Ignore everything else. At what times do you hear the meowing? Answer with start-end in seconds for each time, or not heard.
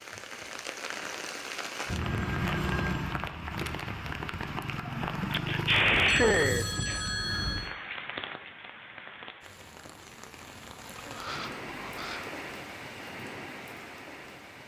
not heard.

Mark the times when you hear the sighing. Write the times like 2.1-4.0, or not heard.
4.8-7.0.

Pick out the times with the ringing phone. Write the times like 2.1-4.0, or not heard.
1.9-3.1, 6.0-7.8, 10.9-12.3.